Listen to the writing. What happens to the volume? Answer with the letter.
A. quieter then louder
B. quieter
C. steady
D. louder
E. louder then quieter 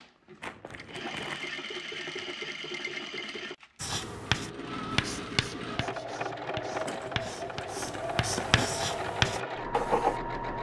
A.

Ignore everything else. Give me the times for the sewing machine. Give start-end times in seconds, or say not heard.
0.0-10.5.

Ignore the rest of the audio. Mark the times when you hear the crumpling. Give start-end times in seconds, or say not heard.
0.4-1.5, 6.7-8.7.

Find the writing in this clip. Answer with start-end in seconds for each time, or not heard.
3.8-10.2.